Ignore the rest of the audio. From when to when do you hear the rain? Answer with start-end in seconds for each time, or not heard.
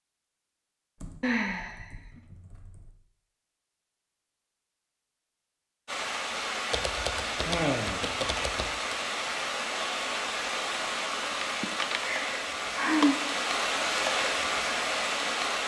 5.8-15.6.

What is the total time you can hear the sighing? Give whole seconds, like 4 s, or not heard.
3 s.